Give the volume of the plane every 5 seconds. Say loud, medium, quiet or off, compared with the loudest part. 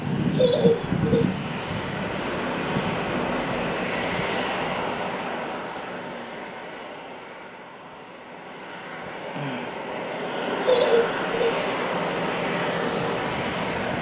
loud, medium, loud.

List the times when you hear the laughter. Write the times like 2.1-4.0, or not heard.
0.2-1.4, 10.6-11.7.